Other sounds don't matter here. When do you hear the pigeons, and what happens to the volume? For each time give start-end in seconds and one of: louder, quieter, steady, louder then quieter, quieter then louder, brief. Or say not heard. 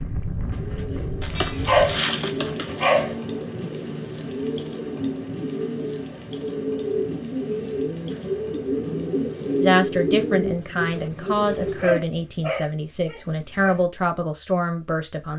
0.3-12.0 louder.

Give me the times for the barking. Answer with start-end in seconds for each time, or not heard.
1.2-3.1, 11.8-13.8.